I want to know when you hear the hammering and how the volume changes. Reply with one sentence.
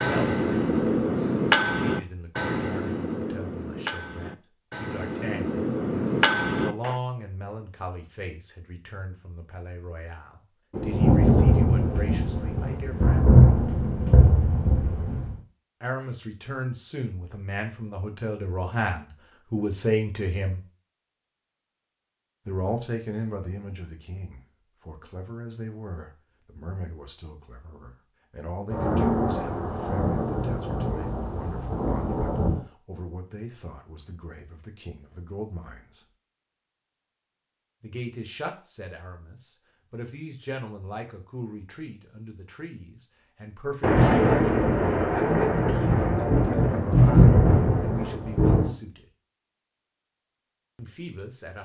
You can hear the hammering from 0.0 to 7.0 s, getting quieter then louder.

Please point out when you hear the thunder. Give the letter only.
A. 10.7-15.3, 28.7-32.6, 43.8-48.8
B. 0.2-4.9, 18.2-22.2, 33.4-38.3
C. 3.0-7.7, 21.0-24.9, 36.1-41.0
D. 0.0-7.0
A.